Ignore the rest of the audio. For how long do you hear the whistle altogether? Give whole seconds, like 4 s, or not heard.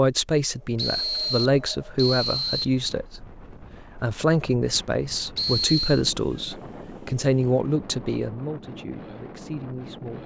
3 s.